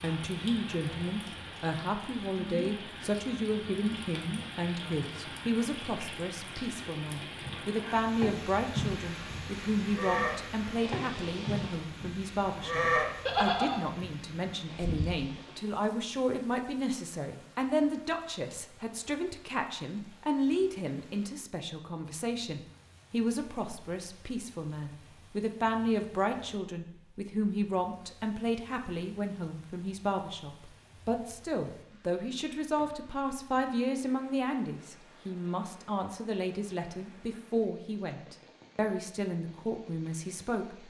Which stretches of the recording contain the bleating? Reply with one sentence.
You can hear the bleating from 8.2 to 15.2 s.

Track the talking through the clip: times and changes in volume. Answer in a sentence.
You can hear the talking from 0.0 to 40.8 s, at a steady volume.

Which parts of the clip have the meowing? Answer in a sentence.
The meowing can't be heard in this clip.